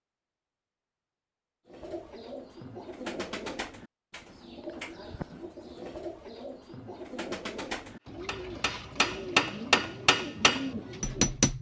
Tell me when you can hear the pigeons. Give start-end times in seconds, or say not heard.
1.6-11.4.